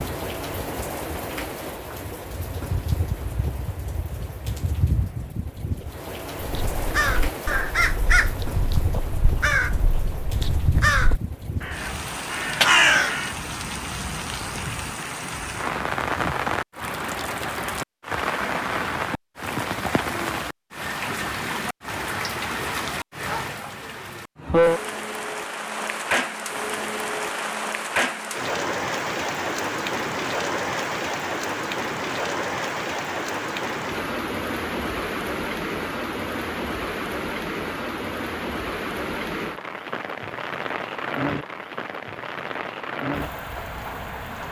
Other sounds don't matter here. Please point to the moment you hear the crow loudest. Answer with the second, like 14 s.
13 s.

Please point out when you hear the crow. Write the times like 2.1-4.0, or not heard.
6.4-13.3.